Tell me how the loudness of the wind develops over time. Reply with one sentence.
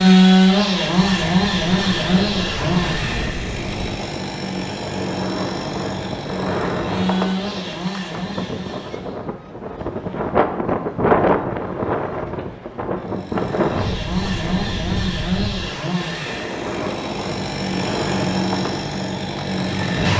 The loudness of the wind goes up, then down.